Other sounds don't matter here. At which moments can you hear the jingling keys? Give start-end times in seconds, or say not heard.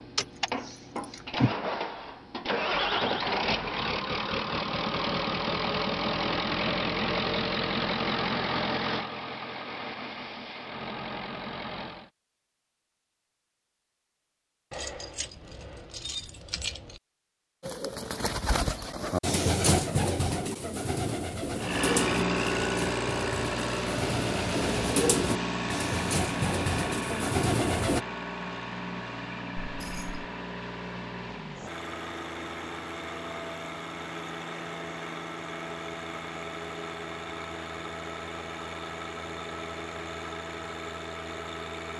0.1-1.6, 14.7-17.0, 29.8-30.2.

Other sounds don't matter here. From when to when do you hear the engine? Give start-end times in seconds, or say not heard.
0.0-12.1, 21.6-41.9.